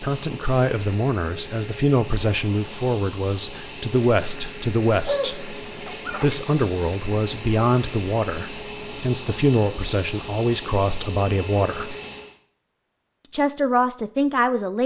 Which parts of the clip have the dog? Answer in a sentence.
You can hear the dog from 5.0 to 6.3 s.